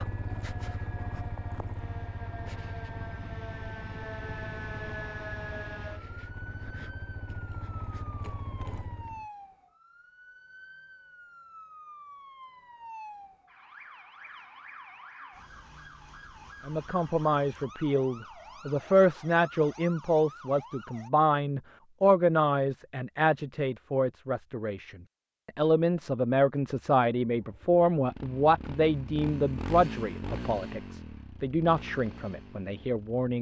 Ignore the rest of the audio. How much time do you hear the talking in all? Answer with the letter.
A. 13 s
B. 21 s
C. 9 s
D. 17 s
D.